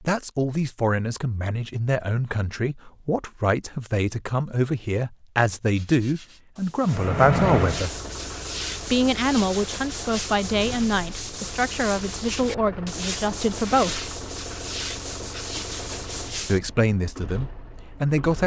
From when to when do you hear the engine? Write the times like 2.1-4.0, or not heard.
6.8-18.4.